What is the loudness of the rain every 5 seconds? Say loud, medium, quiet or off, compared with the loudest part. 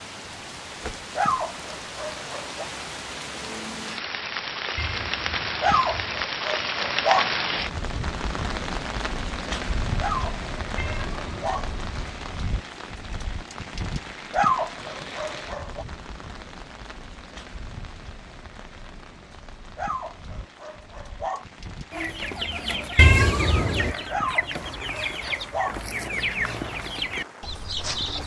medium, loud, medium, quiet, quiet, quiet.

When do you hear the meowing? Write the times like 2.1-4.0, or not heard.
4.8-6.3, 10.8-12.2, 22.9-23.9.